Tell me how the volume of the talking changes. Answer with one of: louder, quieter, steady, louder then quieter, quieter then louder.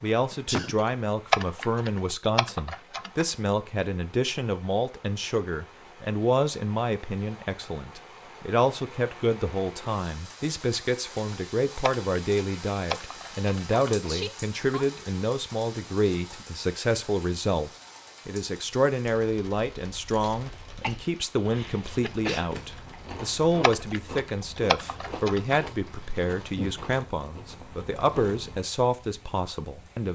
steady.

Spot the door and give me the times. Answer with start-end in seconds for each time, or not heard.
not heard.